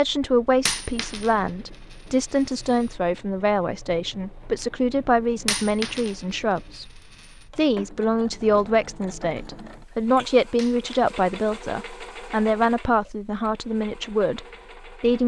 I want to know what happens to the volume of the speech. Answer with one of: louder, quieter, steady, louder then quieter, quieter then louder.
steady.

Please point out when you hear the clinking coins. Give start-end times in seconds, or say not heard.
0.7-1.3, 5.5-6.2, 10.6-11.2.